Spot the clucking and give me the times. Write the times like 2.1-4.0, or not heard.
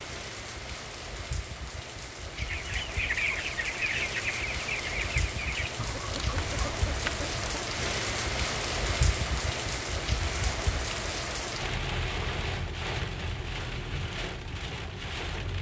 2.4-7.6.